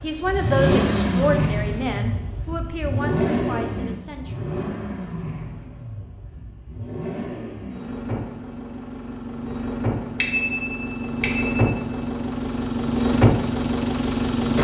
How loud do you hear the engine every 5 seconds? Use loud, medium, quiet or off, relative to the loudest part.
loud, medium, loud.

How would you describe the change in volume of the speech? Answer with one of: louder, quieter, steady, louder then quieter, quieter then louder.
quieter.